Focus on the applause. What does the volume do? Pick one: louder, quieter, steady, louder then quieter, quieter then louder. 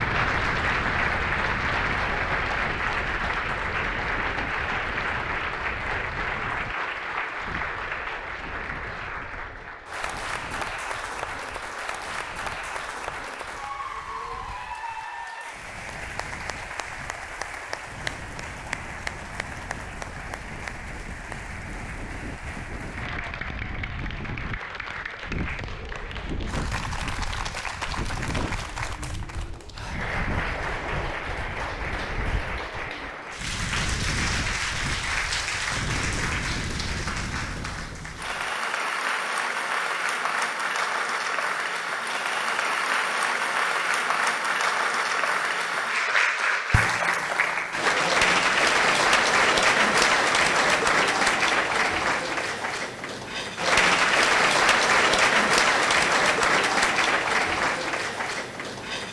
quieter then louder.